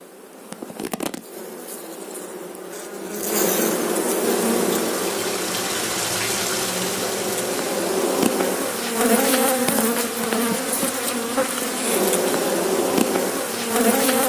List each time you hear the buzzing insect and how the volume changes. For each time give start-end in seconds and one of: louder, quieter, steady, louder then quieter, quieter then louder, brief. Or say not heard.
0.0-14.2 louder.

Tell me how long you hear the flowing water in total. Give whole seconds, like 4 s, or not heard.
10 s.